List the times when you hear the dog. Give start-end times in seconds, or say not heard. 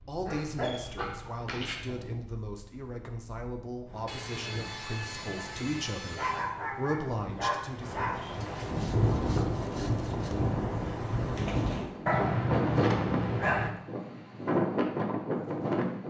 0.2-1.8, 6.2-8.2, 12.1-13.8.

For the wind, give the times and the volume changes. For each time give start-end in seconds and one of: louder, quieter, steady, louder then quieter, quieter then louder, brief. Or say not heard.
0.0-16.0 louder.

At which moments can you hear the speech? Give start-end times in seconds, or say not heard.
0.1-8.1.